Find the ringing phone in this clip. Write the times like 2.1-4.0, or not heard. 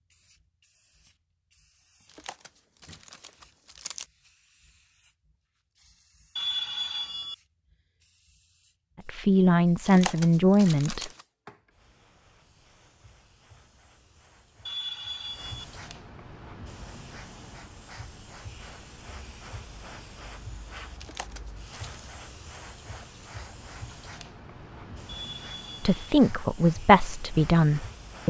6.3-7.3, 14.7-15.7, 25.1-25.9.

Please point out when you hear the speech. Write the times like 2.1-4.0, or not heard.
9.1-11.1, 25.8-28.2.